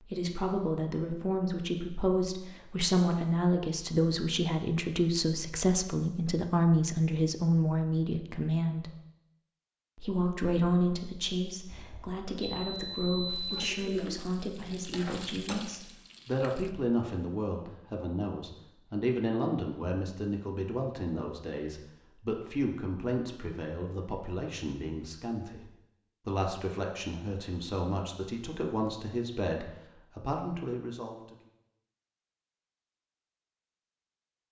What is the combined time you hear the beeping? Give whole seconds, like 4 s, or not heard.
2 s.